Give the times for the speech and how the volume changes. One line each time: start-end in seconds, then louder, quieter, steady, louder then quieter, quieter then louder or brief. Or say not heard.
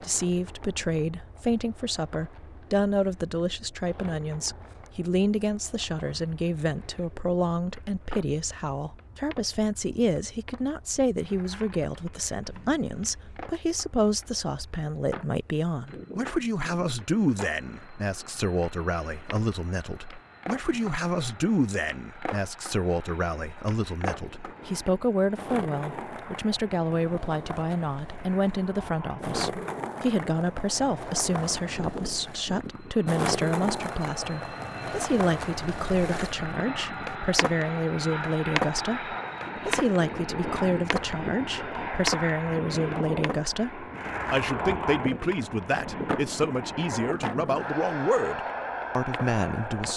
0.0-49.9 steady.